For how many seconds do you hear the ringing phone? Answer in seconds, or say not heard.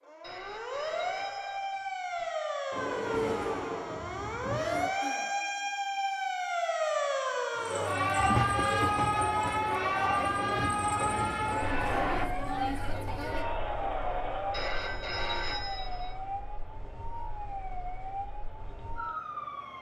4 s.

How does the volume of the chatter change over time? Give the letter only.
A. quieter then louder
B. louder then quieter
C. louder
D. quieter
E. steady
D.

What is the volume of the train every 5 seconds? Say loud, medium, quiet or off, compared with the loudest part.
loud, loud, loud, off.